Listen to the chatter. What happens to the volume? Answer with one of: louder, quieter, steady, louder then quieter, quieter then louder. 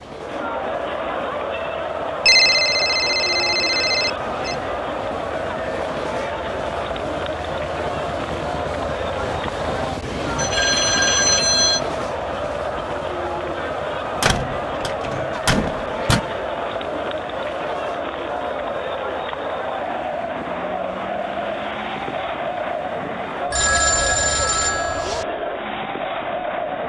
steady.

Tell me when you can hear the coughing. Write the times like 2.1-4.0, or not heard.
not heard.